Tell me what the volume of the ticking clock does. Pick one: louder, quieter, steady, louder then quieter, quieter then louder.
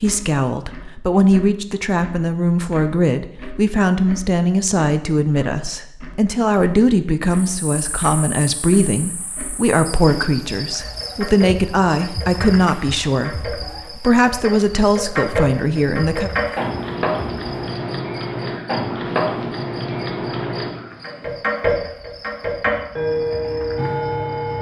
louder.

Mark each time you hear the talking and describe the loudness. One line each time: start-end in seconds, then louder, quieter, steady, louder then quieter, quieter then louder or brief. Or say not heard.
0.0-16.3 steady.